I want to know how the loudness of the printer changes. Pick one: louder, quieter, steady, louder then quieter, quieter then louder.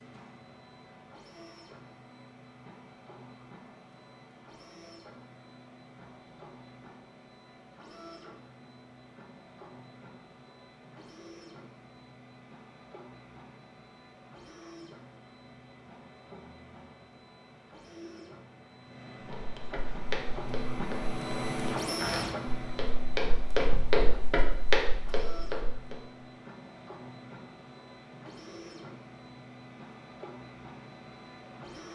louder then quieter.